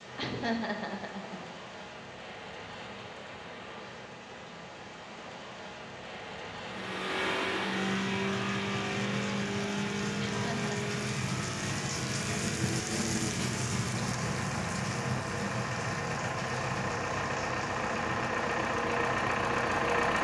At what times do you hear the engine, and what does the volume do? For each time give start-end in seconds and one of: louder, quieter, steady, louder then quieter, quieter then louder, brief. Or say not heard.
6.7-20.1 quieter then louder.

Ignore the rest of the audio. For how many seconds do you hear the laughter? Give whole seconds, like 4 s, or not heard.
2 s.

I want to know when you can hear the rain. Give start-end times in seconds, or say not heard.
0.0-20.1.